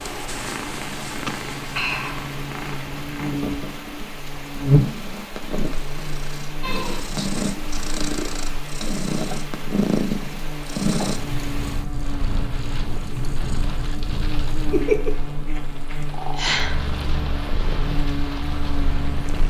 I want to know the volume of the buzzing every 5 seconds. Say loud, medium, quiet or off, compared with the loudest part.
loud, medium, medium, medium.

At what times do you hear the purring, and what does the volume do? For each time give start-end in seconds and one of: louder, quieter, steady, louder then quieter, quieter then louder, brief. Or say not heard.
0.0-19.4 louder then quieter.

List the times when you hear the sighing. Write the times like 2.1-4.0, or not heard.
1.2-2.2, 6.6-7.2, 16.3-16.9.